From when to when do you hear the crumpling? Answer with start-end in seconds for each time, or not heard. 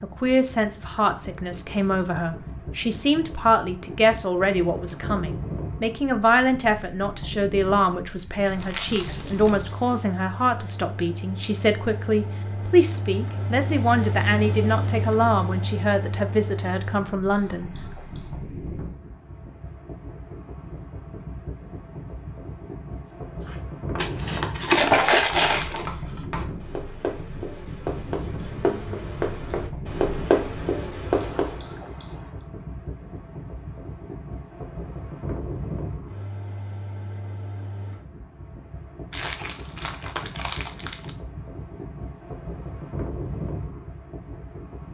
8.6-9.5, 23.9-25.9, 39.1-41.1.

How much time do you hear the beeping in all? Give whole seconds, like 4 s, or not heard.
4 s.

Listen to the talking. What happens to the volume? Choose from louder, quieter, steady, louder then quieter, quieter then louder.
steady.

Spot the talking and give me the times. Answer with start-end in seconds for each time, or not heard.
0.0-17.7.